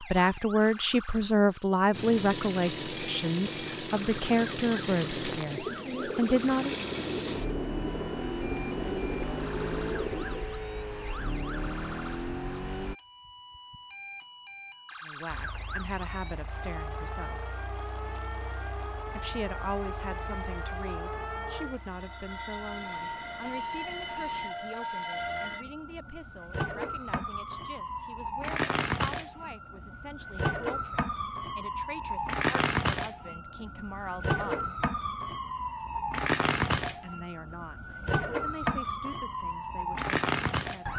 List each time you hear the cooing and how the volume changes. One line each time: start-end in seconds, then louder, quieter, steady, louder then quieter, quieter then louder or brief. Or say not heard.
5.1-10.6 steady.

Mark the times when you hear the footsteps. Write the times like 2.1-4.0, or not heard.
not heard.